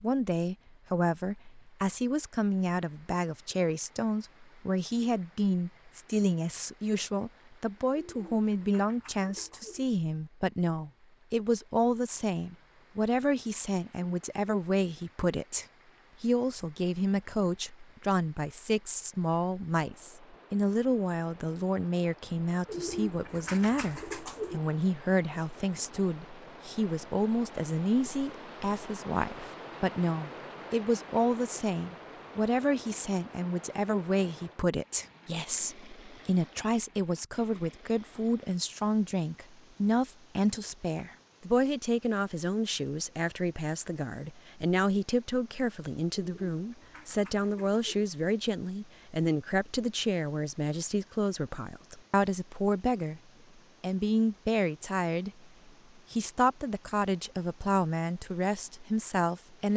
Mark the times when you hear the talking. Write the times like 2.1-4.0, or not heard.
0.0-53.2, 53.8-55.3, 56.1-59.7.